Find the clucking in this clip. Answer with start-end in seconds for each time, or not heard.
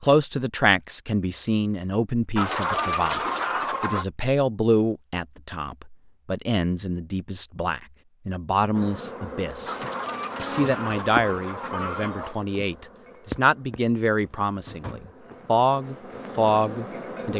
2.4-4.0, 9.7-12.4.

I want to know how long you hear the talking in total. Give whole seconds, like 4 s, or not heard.
17 s.